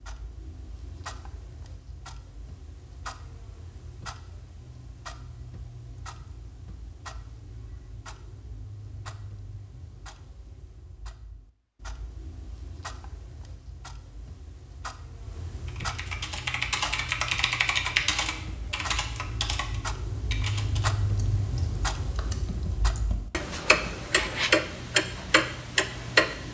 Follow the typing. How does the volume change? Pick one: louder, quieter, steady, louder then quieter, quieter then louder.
quieter.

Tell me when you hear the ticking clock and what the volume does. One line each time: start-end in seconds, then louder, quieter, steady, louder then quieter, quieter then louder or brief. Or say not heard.
0.0-26.4 louder.